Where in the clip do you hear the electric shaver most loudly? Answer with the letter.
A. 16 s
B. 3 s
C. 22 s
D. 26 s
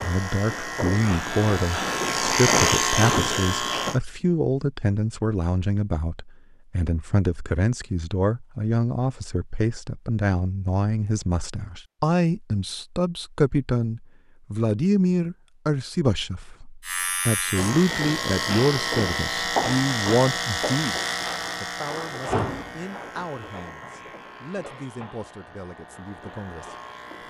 B.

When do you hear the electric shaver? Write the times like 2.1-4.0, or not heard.
0.0-4.0, 16.8-27.2.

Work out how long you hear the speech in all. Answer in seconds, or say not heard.
27 s.